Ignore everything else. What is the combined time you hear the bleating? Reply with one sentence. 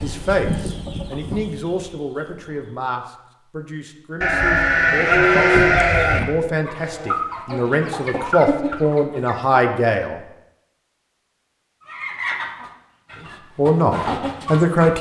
You can hear the bleating for 2 seconds altogether.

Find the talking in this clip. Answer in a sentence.
The talking can be heard from 0.0 to 10.2 s and from 13.6 to 14.9 s.